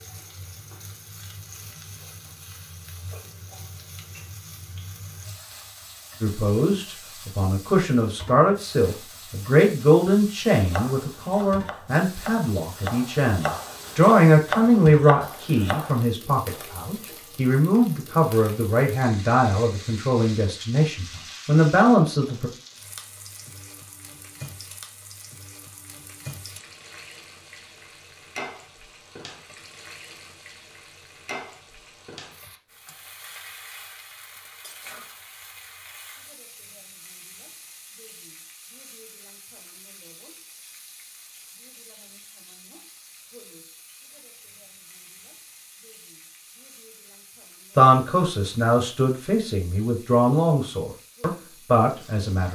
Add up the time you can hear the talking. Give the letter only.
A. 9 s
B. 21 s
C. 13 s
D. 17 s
B.